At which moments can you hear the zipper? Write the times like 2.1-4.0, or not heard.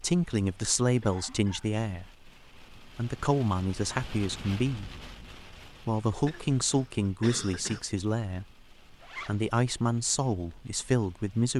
9.0-9.5.